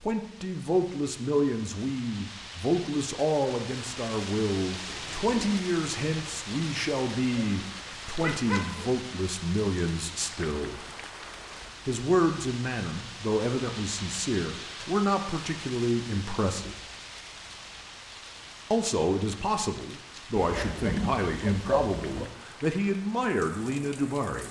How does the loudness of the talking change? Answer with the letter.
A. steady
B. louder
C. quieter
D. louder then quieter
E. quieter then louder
A.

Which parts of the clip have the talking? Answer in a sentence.
You can hear the talking from 0.0 to 10.8 s, from 11.8 to 16.8 s and from 18.7 to 24.4 s.